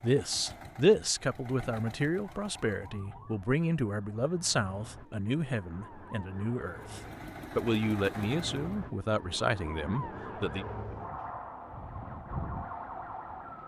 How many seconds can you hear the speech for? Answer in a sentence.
You can hear the speech for 11 seconds altogether.